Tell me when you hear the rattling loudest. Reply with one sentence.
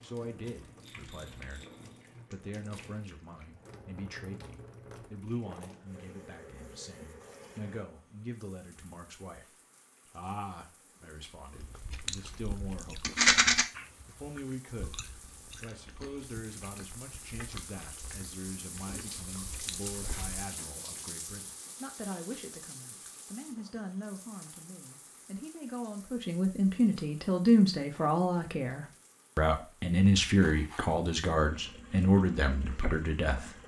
The volume of the rattling peaks at 13 seconds.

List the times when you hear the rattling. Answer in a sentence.
The rattling can be heard from 0.8 to 1.9 s, from 13.0 to 13.7 s and from 30.4 to 30.9 s.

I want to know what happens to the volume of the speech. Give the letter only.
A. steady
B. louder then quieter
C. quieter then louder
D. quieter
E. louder
E.